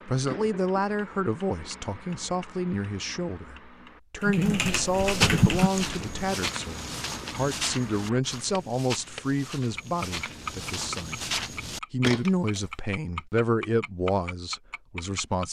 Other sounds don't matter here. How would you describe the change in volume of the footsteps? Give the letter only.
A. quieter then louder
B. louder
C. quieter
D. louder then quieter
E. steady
A.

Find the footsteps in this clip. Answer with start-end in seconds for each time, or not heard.
4.8-12.6.